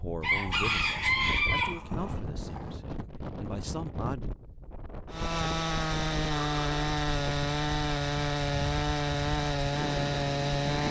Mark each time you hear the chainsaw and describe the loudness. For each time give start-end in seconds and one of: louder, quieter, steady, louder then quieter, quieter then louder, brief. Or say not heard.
5.1-10.8 steady.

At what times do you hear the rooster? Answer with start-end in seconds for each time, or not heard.
0.2-1.8.